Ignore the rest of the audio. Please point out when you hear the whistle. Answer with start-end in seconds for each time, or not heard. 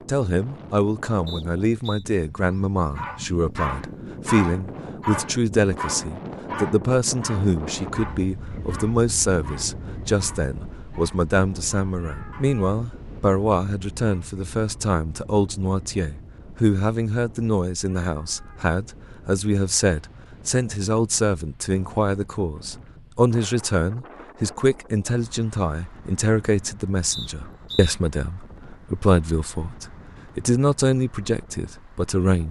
1.2-2.0, 27.1-27.9.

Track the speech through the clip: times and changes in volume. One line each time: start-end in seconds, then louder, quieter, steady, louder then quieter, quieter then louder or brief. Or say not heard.
0.1-32.4 steady.